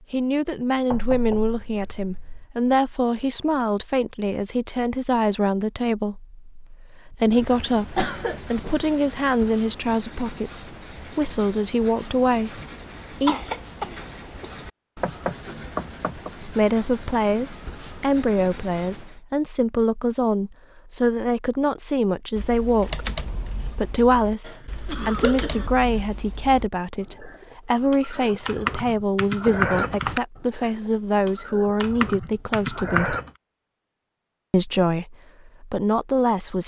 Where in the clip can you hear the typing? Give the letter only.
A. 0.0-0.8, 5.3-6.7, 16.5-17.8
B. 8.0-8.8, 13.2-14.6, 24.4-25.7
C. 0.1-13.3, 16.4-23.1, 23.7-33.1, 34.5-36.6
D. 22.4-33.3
D.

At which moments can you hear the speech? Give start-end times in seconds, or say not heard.
0.1-13.3, 16.4-23.1, 23.7-33.1, 34.5-36.6.